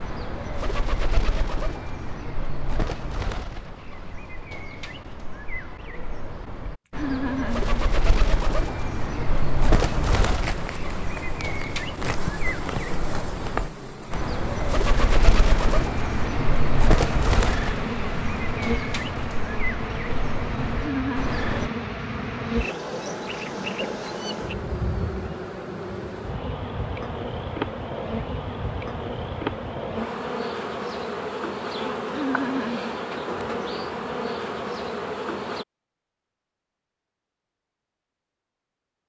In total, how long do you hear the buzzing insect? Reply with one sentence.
The buzzing insect can be heard for 25 seconds in total.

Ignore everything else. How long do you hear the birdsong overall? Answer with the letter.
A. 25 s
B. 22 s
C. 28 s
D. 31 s
B.